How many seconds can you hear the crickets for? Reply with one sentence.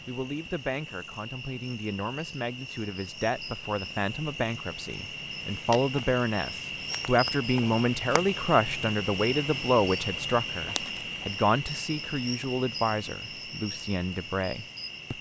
You can hear the crickets for 15 seconds altogether.